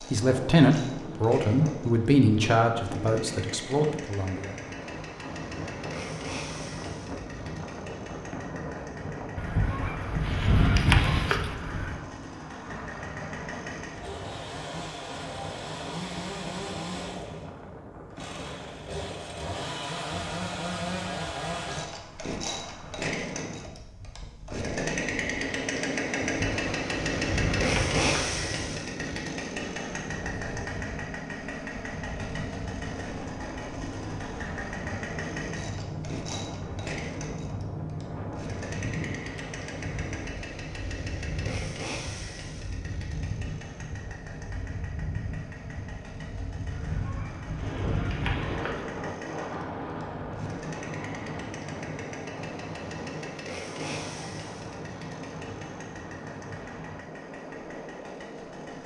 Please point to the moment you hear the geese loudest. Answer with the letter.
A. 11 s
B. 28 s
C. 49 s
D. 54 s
A.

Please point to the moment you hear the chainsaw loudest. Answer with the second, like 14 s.
28 s.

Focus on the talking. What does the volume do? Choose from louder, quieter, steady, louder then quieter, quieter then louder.
quieter.